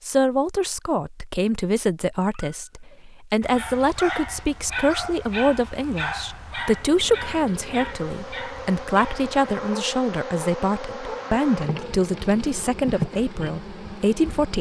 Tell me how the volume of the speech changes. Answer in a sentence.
The volume of the speech stays about the same.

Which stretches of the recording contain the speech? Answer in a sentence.
The speech can be heard from 0.0 to 14.5 s.